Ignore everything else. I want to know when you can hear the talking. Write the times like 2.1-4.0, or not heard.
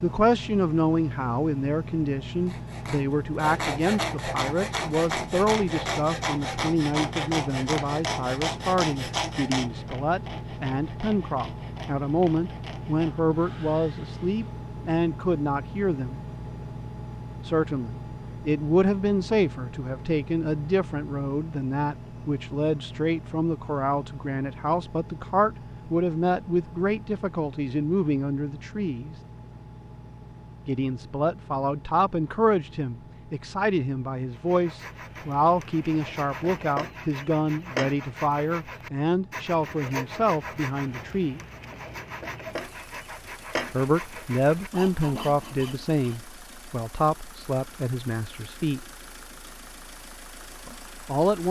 0.0-16.2, 17.4-29.1, 30.6-41.4, 43.7-48.9, 50.6-51.4.